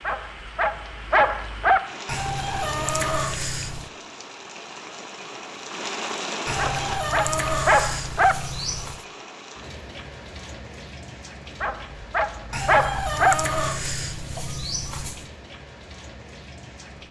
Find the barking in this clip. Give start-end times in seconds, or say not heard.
0.1-1.8, 6.5-8.3, 11.6-13.3.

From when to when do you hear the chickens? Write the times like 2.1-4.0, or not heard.
2.0-3.9, 6.5-9.1, 12.5-15.2.